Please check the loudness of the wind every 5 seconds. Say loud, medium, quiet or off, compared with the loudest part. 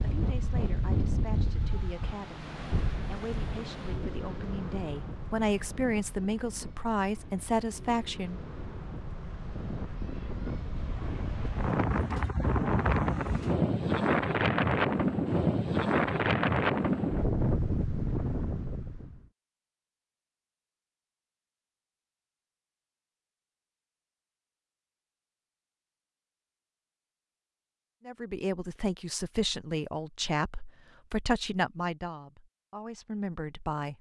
medium, quiet, loud, loud, off, off, off.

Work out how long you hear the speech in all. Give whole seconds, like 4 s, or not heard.
14 s.